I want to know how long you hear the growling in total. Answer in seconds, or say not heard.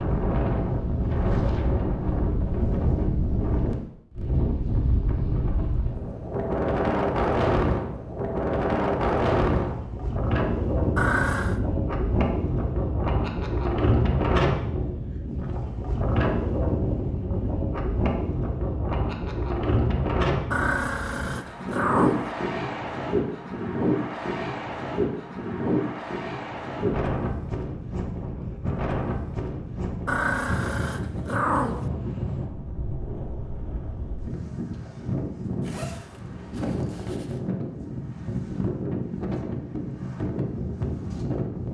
4 s.